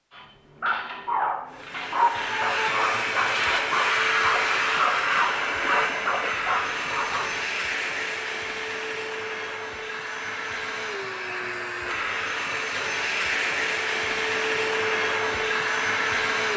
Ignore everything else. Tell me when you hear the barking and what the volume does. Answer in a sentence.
You can hear the barking from 0.1 to 7.2 s, at a steady volume.